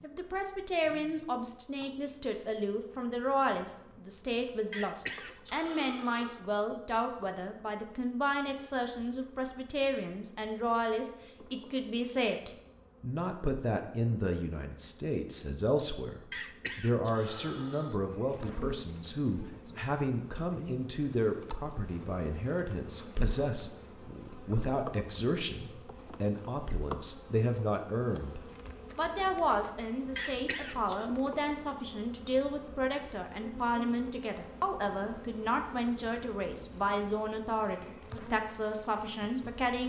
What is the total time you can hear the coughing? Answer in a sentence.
The coughing can be heard for 4 seconds in total.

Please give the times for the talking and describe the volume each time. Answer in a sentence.
You can hear the talking from 0.0 to 39.8 s, at a steady volume.